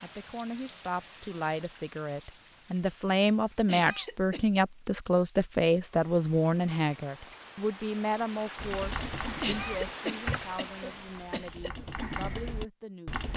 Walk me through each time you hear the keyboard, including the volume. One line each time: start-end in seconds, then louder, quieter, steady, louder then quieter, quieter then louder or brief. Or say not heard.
8.6-13.3 quieter then louder.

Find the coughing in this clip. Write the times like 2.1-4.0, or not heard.
3.6-4.5, 9.4-11.7.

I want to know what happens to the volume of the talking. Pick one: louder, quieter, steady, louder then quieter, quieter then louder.
louder then quieter.